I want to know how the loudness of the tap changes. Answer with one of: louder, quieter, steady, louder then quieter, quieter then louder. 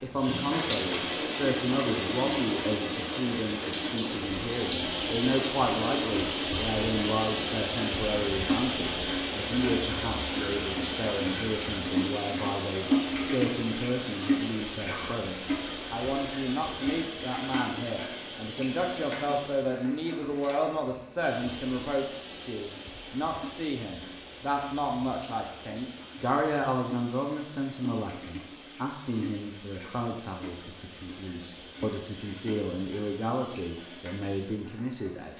quieter.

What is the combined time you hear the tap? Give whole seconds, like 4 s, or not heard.
35 s.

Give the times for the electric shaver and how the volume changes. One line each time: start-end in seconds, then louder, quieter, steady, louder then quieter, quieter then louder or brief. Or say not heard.
not heard.